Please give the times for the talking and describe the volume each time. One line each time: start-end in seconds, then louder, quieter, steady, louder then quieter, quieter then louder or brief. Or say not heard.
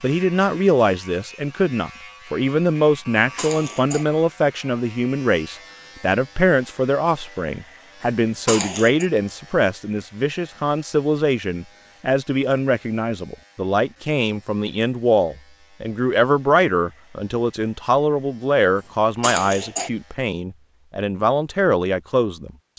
0.0-22.7 steady.